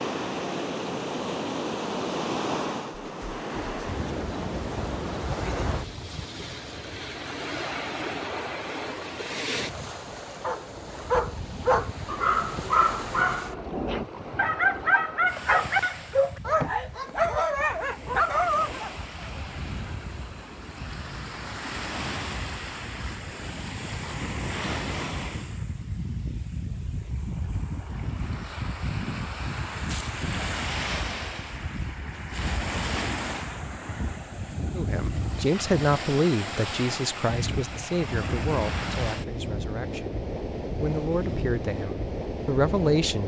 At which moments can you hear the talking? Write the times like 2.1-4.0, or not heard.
34.8-43.2.